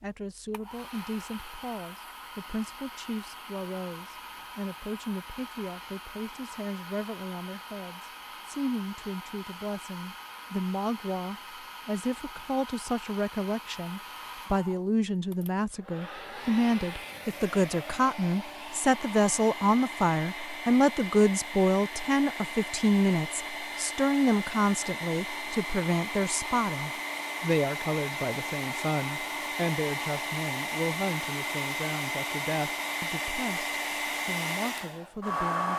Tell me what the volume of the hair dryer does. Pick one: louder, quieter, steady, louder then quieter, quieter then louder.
louder.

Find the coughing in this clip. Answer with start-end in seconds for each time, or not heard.
not heard.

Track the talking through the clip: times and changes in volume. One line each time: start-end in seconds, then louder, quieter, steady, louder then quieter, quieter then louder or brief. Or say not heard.
0.0-35.7 louder then quieter.